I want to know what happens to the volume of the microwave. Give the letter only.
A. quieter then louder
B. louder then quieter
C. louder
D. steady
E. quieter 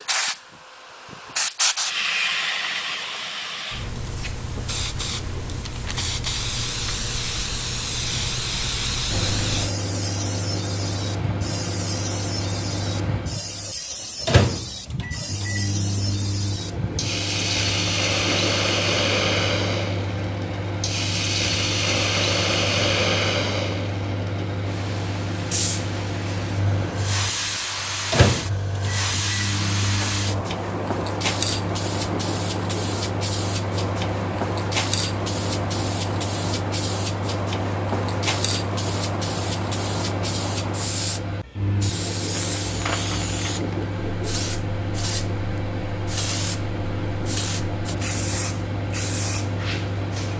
D.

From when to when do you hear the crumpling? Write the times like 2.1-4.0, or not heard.
42.3-43.9.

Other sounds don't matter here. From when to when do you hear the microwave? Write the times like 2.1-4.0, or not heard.
9.1-50.3.